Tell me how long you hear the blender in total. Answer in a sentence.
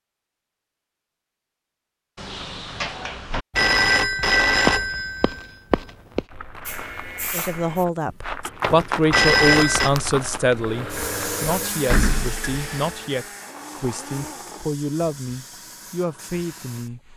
The blender can be heard for 4 seconds in total.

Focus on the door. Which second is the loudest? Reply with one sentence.
The loudest moment of the door is at 12 seconds.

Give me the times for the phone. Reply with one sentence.
You can hear the phone from 3.5 to 6.2 s and from 9.1 to 9.9 s.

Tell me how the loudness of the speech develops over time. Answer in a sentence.
The volume of the speech goes down.